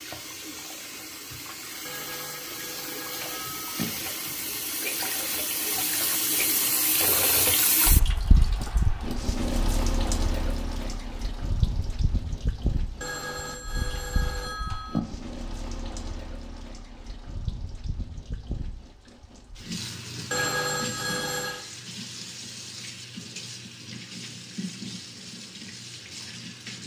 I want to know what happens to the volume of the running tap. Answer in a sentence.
The loudness of the running tap goes up, then down.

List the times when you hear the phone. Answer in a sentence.
You can hear the phone from 1.9 to 3.9 s, from 13.0 to 15.0 s and from 20.3 to 21.6 s.